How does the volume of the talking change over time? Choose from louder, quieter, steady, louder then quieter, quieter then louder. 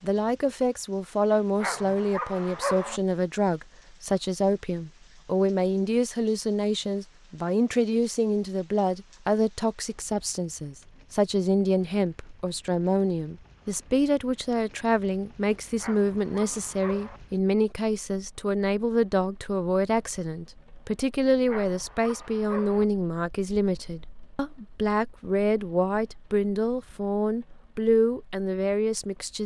steady.